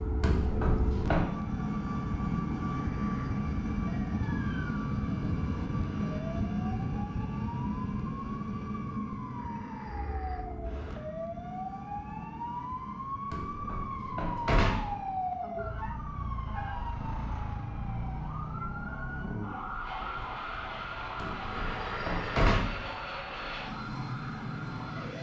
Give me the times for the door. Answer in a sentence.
You can hear the door from 0.2 to 1.3 s, from 13.3 to 14.9 s and from 21.1 to 22.9 s.